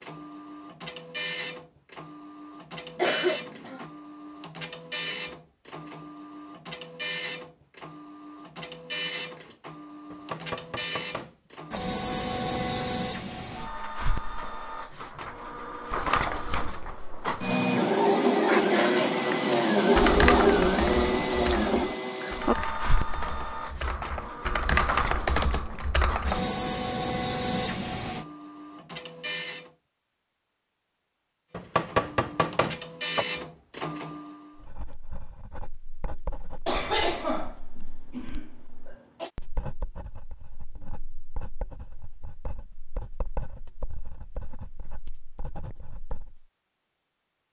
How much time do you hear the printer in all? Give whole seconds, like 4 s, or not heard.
32 s.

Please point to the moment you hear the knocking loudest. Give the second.
32 s.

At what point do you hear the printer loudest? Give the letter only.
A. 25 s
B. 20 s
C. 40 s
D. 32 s
B.